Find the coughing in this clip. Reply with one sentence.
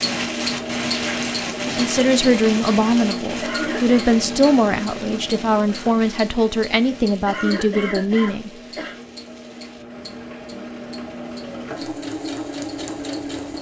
The coughing can be heard from 3.4 to 4.1 s and from 7.2 to 8.9 s.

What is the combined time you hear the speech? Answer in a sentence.
The speech can be heard for 7 seconds in total.